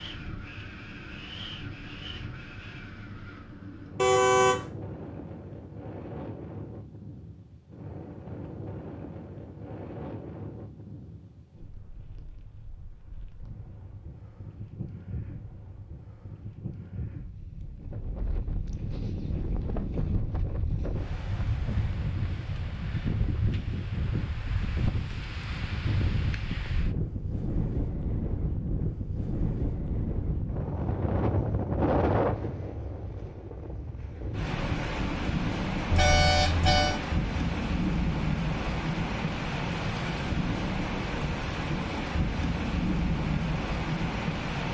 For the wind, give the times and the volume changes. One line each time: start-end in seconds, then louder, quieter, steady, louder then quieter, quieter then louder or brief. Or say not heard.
0.0-44.6 louder.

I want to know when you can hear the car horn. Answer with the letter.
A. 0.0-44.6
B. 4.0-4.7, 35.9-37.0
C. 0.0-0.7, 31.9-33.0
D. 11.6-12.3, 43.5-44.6
B.